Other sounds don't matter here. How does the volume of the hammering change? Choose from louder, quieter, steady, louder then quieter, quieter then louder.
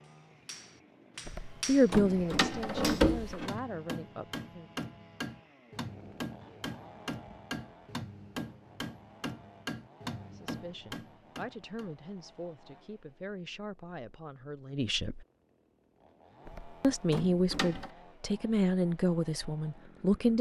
steady.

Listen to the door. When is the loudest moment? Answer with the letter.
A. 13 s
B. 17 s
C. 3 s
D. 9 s
C.